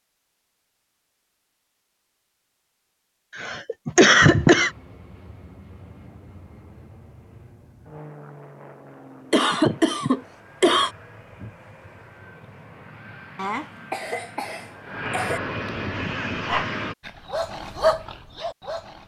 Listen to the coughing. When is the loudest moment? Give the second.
4 s.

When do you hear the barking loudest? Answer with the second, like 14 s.
18 s.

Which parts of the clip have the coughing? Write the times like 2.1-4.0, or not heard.
3.4-4.7, 9.3-10.9, 13.3-15.4.